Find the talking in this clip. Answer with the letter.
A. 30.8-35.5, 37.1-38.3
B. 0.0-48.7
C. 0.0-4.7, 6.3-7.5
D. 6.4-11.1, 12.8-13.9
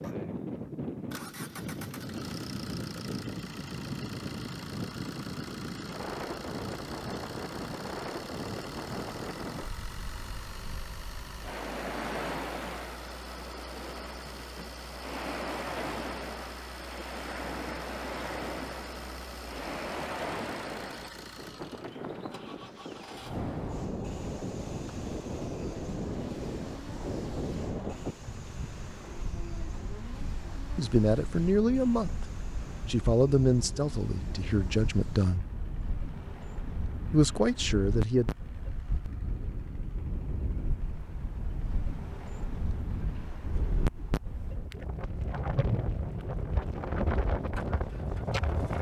A.